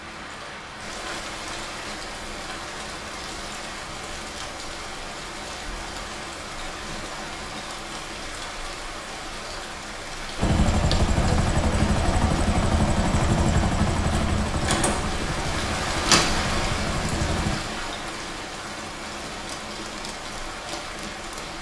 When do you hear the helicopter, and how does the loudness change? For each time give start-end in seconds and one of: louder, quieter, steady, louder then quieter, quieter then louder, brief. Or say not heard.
10.3-17.6 quieter.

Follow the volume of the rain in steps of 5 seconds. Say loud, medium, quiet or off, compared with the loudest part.
medium, medium, medium, loud, medium.